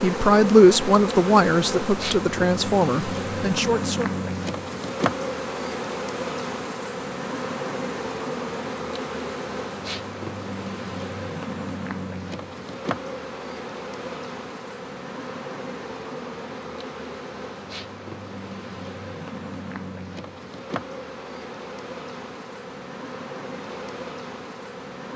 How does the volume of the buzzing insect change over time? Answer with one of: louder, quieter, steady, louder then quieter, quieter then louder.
quieter.